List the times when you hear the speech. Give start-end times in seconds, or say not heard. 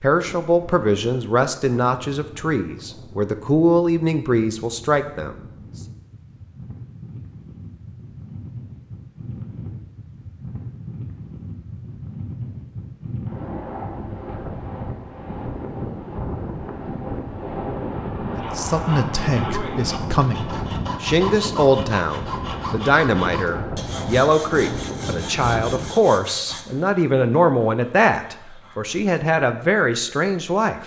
0.0-5.3, 18.4-30.8.